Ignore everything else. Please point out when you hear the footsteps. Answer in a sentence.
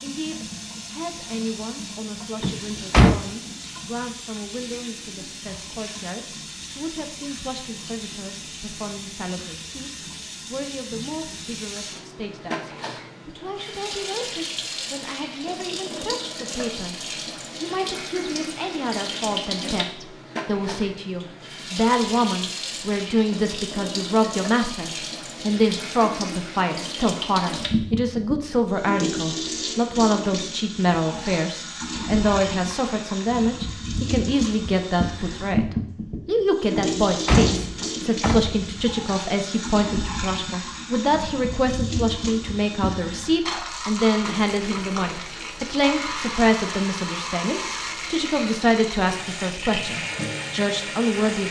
The footsteps can't be heard in this clip.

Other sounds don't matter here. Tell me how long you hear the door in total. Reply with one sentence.
The door can be heard for 3 seconds in total.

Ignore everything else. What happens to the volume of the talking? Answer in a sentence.
The volume of the talking goes up.